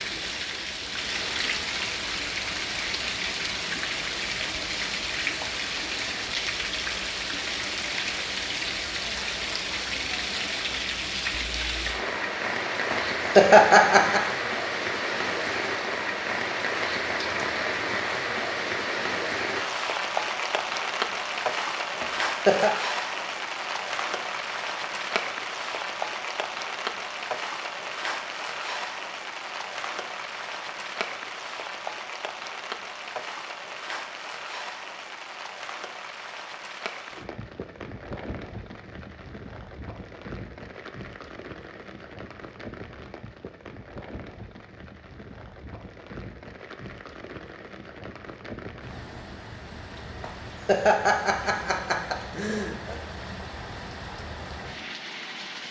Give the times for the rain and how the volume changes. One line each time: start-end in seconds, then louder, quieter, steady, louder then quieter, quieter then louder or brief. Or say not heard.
0.0-55.6 quieter.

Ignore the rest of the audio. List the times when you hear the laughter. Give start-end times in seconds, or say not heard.
12.9-14.2, 22.0-22.7, 50.2-53.0.